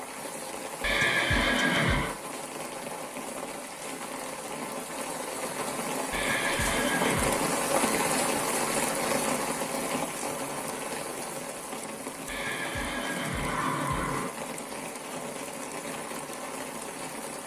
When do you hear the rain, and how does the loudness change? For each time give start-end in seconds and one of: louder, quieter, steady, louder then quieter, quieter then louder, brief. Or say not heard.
0.0-17.4 louder then quieter.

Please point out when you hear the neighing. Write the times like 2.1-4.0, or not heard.
0.8-2.1, 6.1-7.4, 12.2-14.3.